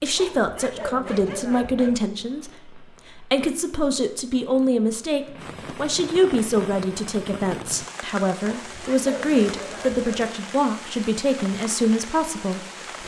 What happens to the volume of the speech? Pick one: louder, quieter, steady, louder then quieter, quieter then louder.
steady.